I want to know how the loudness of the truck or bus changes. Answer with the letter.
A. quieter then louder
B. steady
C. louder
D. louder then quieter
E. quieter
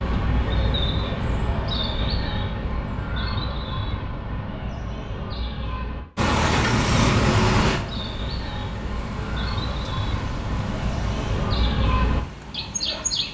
E.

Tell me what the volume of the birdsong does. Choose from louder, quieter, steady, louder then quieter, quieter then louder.
quieter then louder.